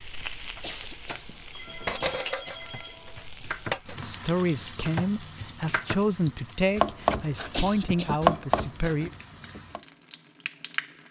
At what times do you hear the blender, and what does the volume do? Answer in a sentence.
The blender can't be heard in this clip.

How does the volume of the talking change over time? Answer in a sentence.
The volume of the talking stays about the same.